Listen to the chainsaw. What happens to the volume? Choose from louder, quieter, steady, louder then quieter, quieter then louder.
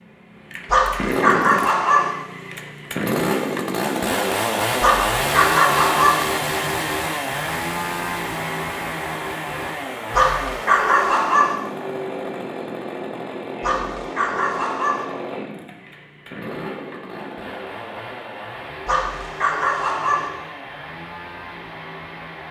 quieter.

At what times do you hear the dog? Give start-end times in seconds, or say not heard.
0.7-2.1, 4.8-6.2, 10.1-11.6, 13.6-15.1, 18.9-20.3.